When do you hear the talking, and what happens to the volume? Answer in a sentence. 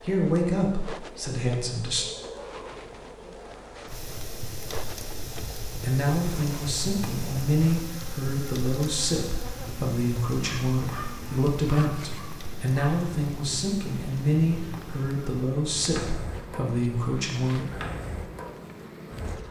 The talking can be heard briefly from 0.0 to 2.0 s; and from 5.7 to 17.8 s, at a steady volume.